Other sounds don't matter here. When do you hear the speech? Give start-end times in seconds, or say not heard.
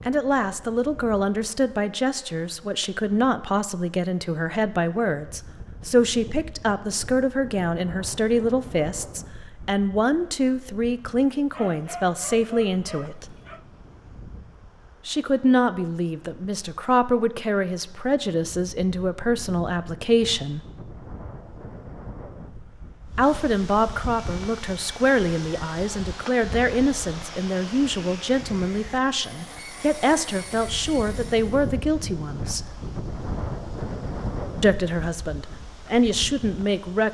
0.1-13.3, 15.1-20.6, 23.1-32.6, 34.6-37.0.